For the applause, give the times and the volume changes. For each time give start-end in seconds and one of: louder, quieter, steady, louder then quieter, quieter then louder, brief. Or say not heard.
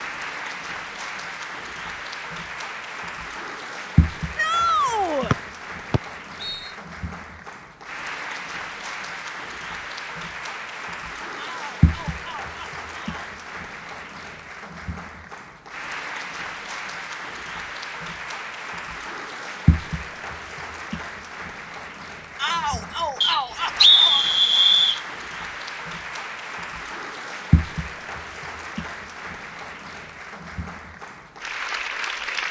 0.0-32.4 steady.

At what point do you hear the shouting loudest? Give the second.
5 s.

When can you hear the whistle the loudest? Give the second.
24 s.